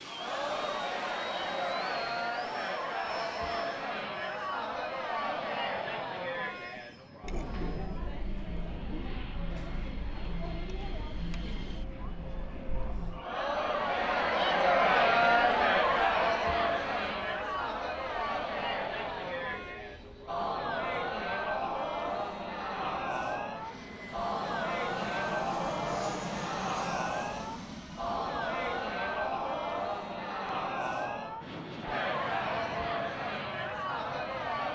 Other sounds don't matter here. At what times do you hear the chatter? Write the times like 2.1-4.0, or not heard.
0.0-34.7.